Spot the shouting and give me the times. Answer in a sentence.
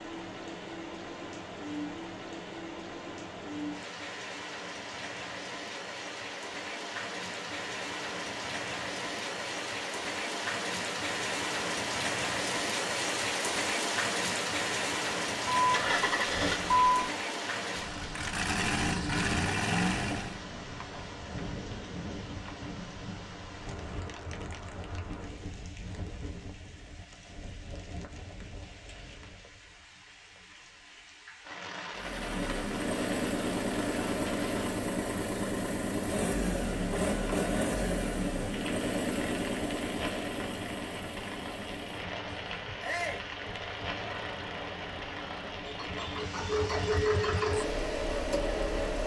You can hear the shouting from 42.8 to 43.2 s.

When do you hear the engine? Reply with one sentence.
The engine can be heard from 15.6 to 20.4 s and from 31.9 to 49.0 s.